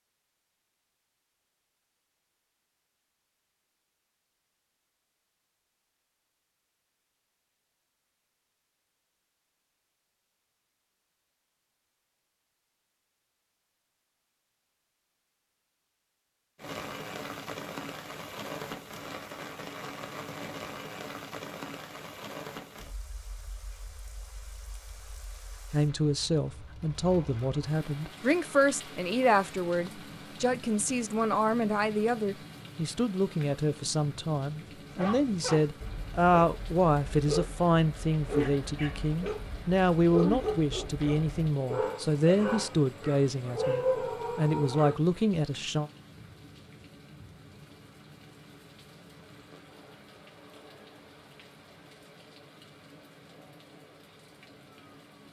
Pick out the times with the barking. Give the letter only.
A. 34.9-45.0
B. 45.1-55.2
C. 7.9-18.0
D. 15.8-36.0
A.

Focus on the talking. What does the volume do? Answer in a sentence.
The loudness of the talking stays about the same.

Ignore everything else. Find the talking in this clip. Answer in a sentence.
You can hear the talking from 25.7 to 45.9 s.